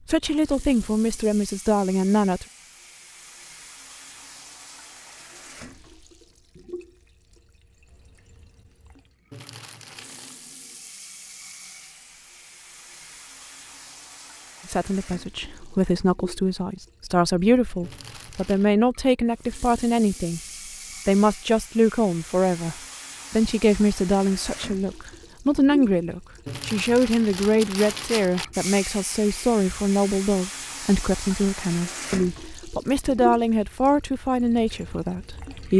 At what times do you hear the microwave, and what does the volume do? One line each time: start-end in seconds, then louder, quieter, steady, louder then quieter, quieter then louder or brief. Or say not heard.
not heard.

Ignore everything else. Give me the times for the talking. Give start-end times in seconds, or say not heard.
0.1-2.5, 14.7-20.4, 21.1-35.7.